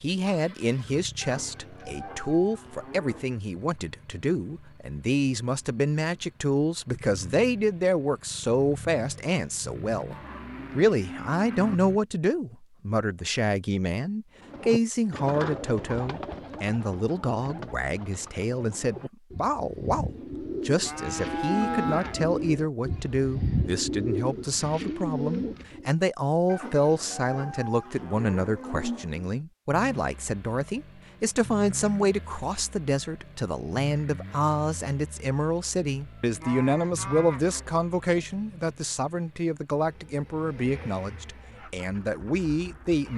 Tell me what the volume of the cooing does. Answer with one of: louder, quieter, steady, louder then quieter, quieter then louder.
quieter then louder.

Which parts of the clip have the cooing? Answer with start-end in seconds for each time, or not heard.
14.4-25.9.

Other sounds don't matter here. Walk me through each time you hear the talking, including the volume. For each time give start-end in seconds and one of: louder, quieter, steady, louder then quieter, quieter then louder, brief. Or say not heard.
0.0-43.1 steady.